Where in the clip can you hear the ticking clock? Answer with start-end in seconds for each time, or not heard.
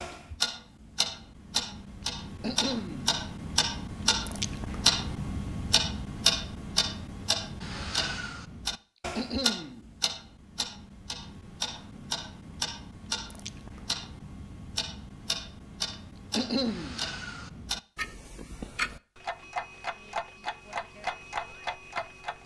0.0-22.4.